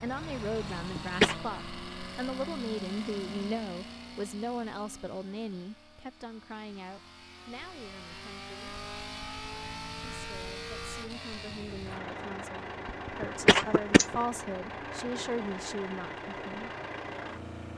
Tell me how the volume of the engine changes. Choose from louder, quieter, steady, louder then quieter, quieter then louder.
quieter then louder.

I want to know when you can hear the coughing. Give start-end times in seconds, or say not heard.
0.8-1.4, 12.8-14.2.